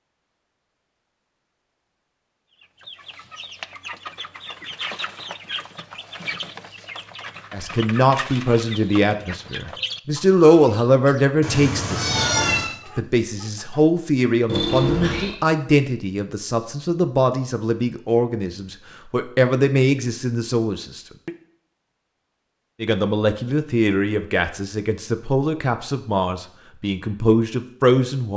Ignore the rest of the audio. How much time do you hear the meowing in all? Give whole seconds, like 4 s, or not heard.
2 s.